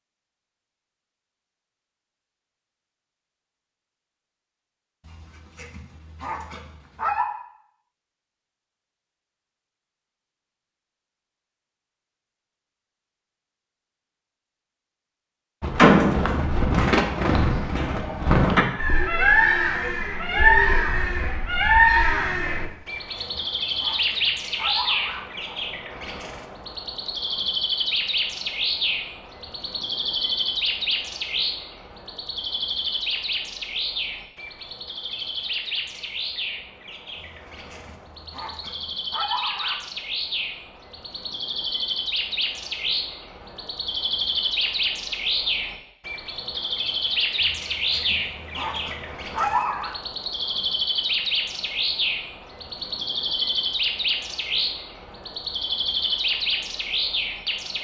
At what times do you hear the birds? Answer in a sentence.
You can hear the birds from 15.6 to 57.7 s.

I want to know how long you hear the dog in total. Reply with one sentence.
The dog can be heard for 10 seconds in total.